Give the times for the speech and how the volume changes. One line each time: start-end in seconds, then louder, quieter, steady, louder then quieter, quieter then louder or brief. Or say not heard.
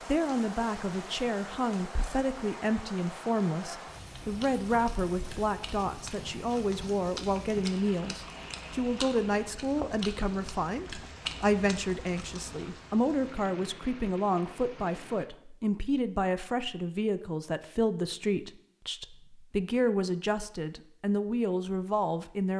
0.1-22.5 steady.